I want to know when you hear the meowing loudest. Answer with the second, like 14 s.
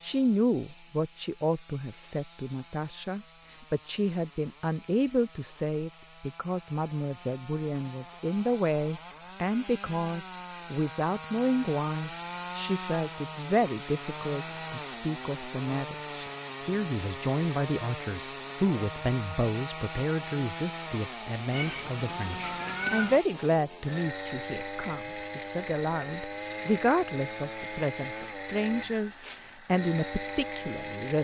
23 s.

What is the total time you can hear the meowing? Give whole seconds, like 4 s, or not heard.
2 s.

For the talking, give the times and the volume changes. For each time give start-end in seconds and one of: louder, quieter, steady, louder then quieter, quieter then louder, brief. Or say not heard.
0.0-31.1 steady.